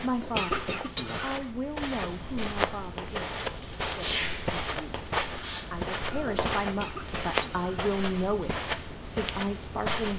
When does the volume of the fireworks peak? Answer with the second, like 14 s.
4 s.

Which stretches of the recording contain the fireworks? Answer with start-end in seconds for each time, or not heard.
3.0-6.5.